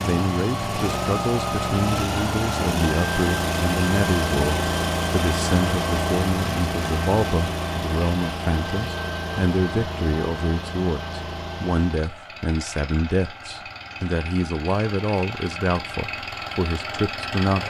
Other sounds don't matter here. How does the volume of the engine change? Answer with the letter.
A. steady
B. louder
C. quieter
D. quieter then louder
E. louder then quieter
C.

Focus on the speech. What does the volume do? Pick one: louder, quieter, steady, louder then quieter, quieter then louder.
steady.